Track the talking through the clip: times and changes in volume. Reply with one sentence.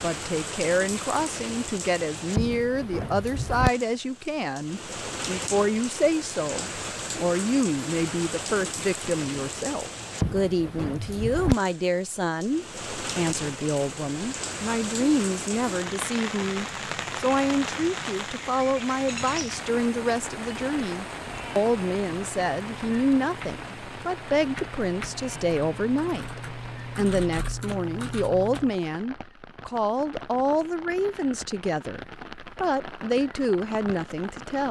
You can hear the talking from 0.0 to 34.6 s, at a steady volume.